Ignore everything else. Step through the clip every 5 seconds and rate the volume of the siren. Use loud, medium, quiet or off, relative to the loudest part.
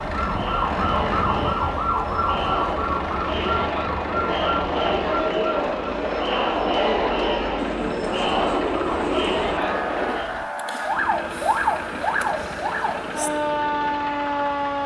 loud, medium, loud.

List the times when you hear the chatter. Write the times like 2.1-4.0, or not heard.
0.0-10.3.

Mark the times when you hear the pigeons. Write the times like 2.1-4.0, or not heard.
7.5-9.4.